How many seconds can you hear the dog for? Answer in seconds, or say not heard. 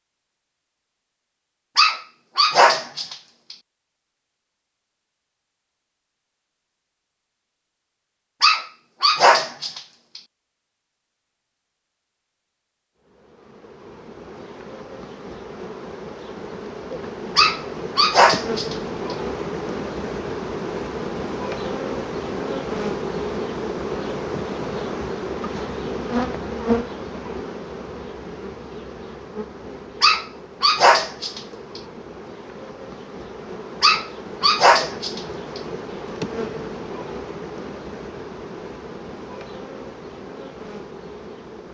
8 s.